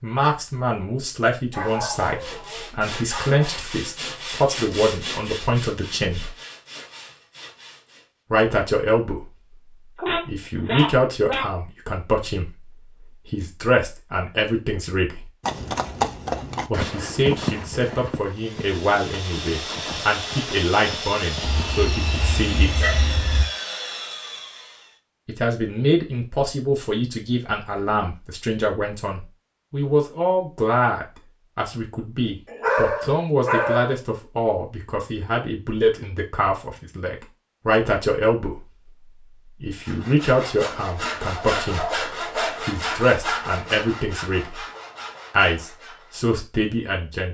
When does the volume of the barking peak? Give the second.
33 s.